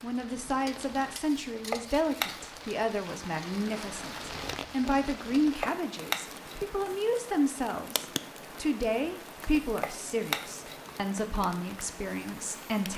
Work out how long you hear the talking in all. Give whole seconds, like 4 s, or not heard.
13 s.